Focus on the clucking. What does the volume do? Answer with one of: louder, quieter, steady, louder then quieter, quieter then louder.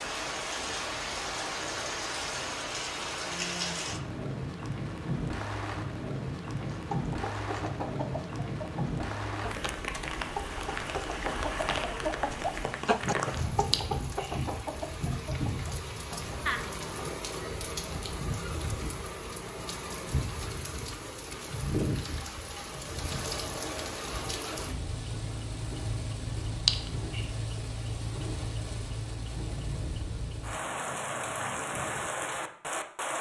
louder then quieter.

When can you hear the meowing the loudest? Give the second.
27 s.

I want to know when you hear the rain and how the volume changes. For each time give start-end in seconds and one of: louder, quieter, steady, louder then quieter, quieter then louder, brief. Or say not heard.
0.0-33.1 steady.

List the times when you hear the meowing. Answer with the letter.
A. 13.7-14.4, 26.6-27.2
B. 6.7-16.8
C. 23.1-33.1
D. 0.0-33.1
A.